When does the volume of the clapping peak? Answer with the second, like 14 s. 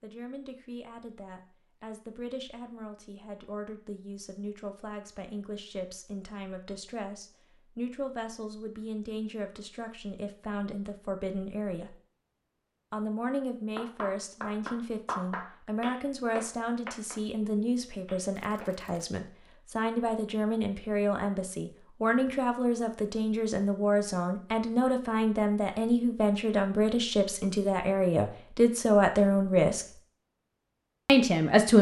15 s.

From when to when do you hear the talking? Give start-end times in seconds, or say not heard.
0.0-11.9, 12.9-29.9, 31.1-31.7.